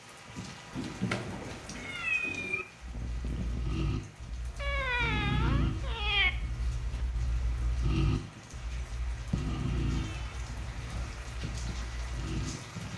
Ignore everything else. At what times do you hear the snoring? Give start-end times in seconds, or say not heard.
2.8-12.5.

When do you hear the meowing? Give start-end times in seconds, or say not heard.
0.7-2.6, 4.5-6.3, 9.1-11.2.